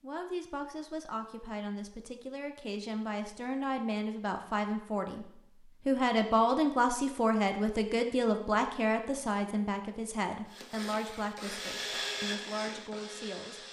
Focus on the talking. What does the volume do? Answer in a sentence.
The loudness of the talking goes up, then down.